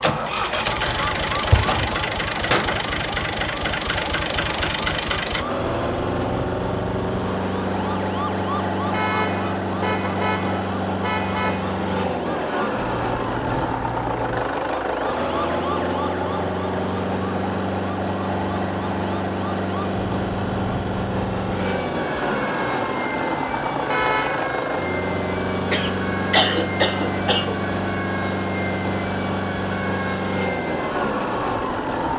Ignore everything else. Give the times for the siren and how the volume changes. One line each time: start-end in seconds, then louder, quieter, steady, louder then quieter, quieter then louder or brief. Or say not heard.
0.0-32.1 steady.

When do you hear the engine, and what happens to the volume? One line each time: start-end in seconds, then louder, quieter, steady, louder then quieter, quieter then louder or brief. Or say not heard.
0.0-32.1 steady.